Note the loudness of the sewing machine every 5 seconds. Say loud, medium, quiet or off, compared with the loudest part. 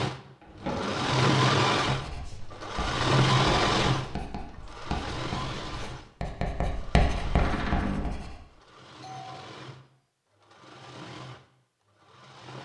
loud, quiet, quiet.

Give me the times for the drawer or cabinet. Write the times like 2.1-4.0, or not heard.
0.4-1.2, 7.3-8.2.